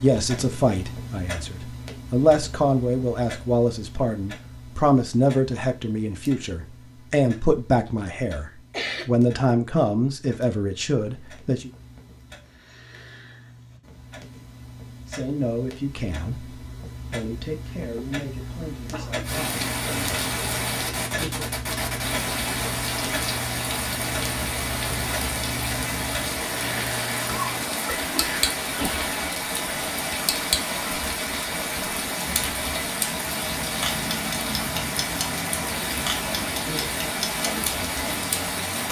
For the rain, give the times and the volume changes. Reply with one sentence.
The rain can be heard from 19.2 to 38.8 s, at a steady volume.